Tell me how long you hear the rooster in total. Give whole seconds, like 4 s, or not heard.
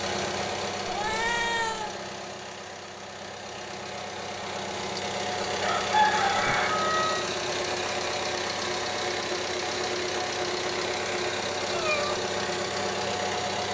2 s.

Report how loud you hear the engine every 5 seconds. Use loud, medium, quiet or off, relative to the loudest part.
medium, loud, loud.